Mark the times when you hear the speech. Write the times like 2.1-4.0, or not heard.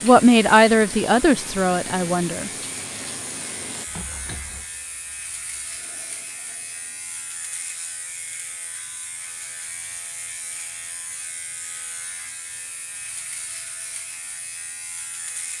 0.0-2.5.